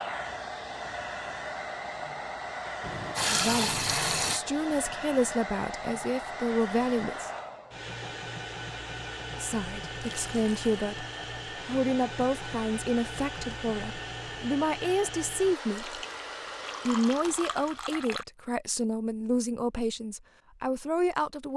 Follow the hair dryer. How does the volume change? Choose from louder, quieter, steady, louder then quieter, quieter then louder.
steady.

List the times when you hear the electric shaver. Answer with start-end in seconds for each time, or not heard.
not heard.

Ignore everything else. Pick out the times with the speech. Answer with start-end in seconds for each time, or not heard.
3.2-7.3, 9.3-11.1, 11.7-16.0, 16.9-21.5.